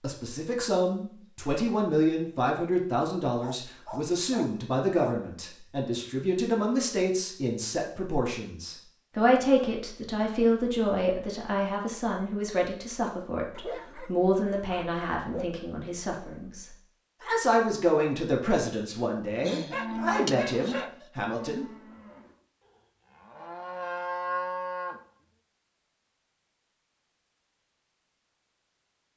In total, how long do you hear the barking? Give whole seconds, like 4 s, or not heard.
5 s.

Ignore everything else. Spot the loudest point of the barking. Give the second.
20 s.